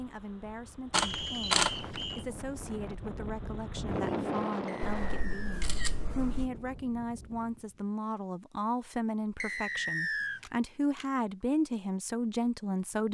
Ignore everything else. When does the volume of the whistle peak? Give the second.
10 s.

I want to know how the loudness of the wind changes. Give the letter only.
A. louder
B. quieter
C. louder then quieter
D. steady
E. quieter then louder
C.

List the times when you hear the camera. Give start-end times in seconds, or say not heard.
0.9-2.0, 4.8-6.5, 10.4-11.1.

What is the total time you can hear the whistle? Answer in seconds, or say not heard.
3 s.